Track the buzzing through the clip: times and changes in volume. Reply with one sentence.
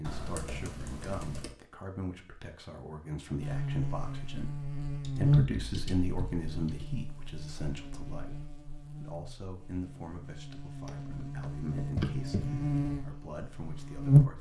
You can hear the buzzing from 3.4 to 14.3 s, getting quieter then louder.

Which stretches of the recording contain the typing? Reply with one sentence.
The typing can be heard from 0.0 to 1.6 s, from 5.0 to 6.8 s and from 10.8 to 12.8 s.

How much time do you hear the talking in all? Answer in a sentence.
You can hear the talking for 14 seconds altogether.